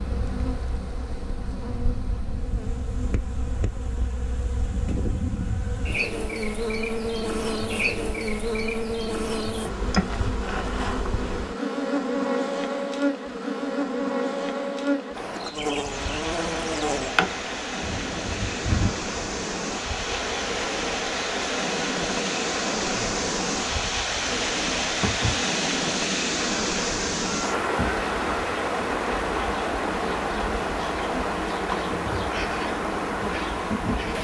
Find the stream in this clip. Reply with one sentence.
The stream can be heard from 15.2 to 34.1 s.